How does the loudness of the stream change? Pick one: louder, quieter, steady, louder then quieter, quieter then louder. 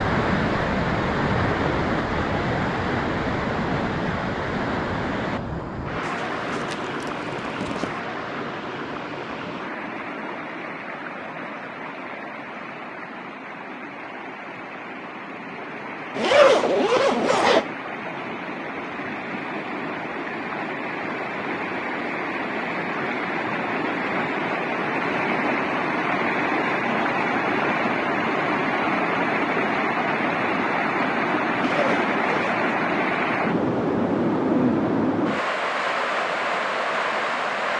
quieter then louder.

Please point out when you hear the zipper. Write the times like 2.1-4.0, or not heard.
6.0-8.0, 16.1-17.6, 31.6-32.6.